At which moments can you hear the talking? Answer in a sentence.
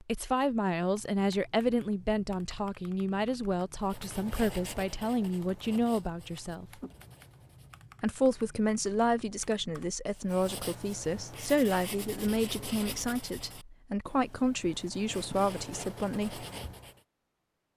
You can hear the talking from 0.0 to 6.7 s and from 8.0 to 16.4 s.